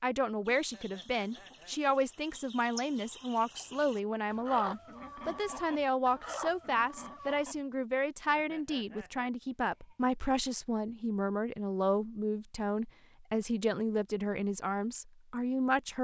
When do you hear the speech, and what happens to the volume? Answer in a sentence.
The speech can be heard from 0.0 to 16.0 s, at a steady volume.